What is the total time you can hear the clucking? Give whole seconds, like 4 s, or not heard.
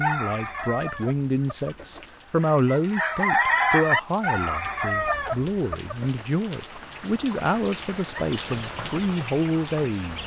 8 s.